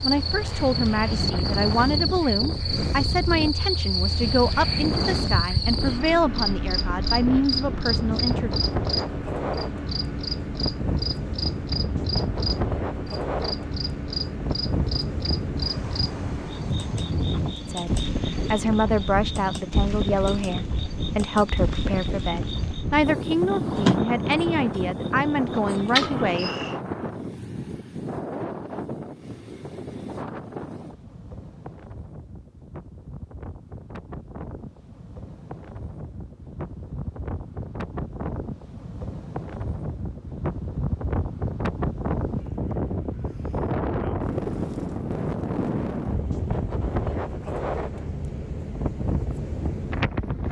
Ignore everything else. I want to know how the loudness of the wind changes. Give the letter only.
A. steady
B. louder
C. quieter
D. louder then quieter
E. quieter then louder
E.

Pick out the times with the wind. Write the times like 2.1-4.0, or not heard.
0.0-50.4.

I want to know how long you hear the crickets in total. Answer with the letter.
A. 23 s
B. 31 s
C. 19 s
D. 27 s
D.